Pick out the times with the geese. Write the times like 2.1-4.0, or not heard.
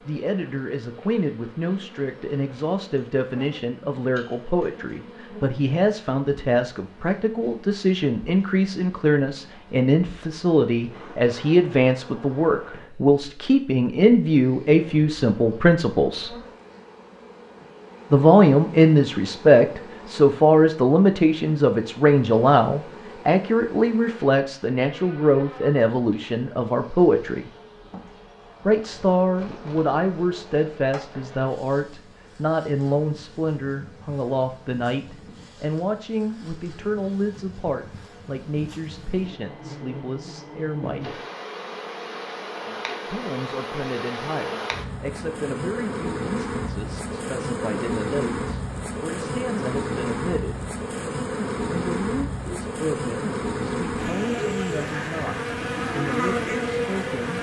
not heard.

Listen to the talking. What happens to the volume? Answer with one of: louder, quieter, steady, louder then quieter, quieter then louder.
louder then quieter.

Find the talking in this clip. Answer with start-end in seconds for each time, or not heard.
0.1-16.4, 18.1-27.4, 28.6-41.2, 43.0-50.6, 51.6-57.3.